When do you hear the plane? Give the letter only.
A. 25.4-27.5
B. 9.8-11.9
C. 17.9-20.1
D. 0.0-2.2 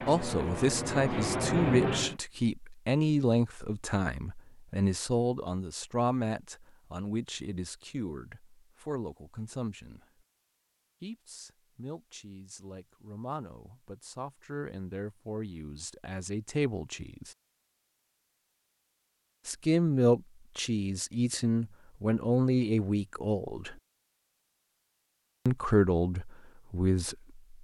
D.